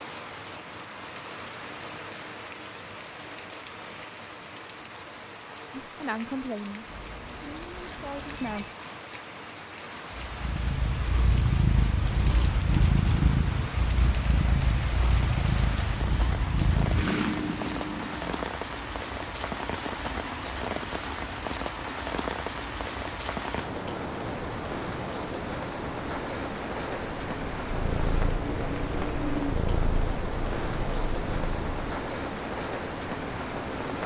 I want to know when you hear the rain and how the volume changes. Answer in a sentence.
You can hear the rain from 0.0 to 34.0 s, getting louder.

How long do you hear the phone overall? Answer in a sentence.
The phone can be heard for 2 seconds in total.